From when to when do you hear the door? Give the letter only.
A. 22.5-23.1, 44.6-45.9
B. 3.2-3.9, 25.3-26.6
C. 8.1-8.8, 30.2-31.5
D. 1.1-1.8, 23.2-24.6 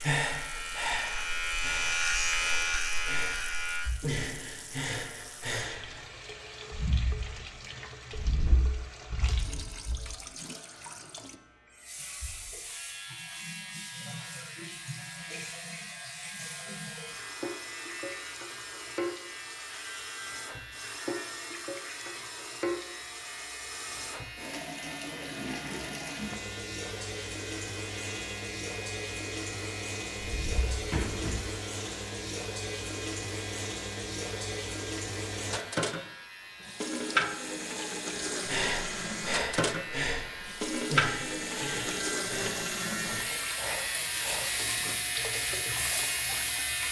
C.